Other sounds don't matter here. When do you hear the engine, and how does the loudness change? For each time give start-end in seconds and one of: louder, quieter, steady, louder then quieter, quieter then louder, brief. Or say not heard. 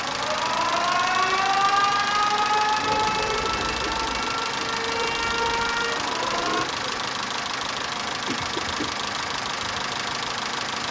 0.0-10.8 steady.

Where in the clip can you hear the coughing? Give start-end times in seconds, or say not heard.
8.1-9.1.